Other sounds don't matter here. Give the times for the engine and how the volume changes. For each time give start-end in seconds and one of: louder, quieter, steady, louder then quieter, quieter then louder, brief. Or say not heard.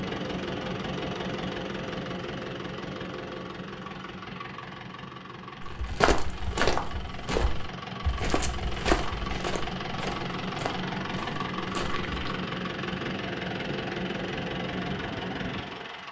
0.0-16.0 quieter then louder.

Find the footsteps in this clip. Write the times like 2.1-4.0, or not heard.
5.6-12.3.